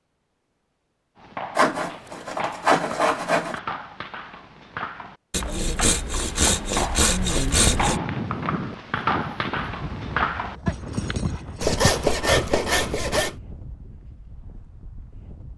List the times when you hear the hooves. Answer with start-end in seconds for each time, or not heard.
1.1-12.5.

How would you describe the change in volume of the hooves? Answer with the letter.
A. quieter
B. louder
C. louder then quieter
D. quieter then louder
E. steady
B.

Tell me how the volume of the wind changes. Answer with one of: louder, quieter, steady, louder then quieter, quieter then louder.
quieter.